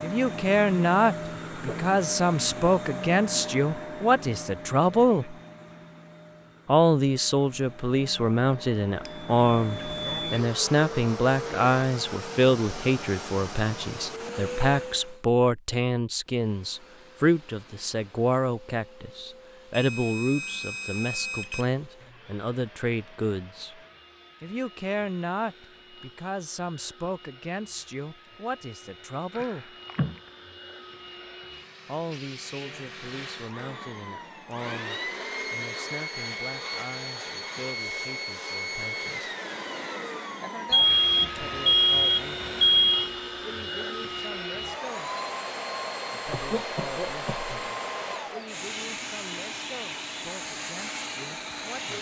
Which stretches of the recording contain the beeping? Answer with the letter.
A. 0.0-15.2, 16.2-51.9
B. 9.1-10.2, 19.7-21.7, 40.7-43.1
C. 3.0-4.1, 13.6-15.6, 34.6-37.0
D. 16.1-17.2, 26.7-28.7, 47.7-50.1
B.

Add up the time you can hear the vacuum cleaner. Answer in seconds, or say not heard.
51 s.